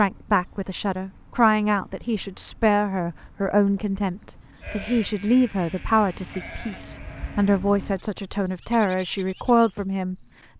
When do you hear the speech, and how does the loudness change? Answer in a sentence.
The speech can be heard from 0.0 to 10.5 s, at a steady volume.